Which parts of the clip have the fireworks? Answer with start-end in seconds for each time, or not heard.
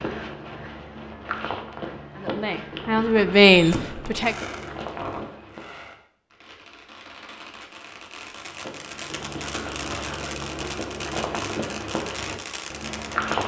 3.5-13.4.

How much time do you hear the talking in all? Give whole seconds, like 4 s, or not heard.
2 s.